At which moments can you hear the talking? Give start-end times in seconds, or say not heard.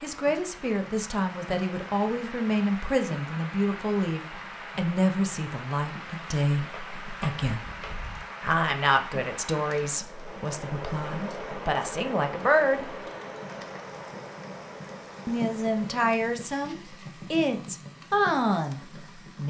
0.0-7.6, 8.4-13.1, 15.2-19.4.